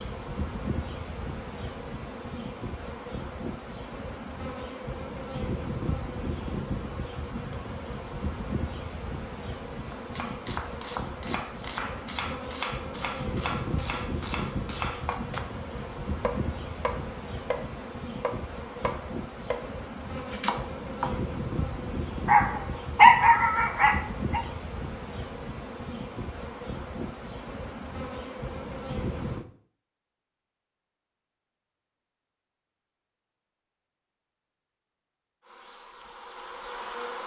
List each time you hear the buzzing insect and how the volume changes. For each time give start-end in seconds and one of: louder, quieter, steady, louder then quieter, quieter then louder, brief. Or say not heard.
0.0-29.4 steady
35.4-37.2 brief.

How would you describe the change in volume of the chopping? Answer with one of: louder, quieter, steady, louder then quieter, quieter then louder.
steady.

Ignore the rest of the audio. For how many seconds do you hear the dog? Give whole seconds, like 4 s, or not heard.
2 s.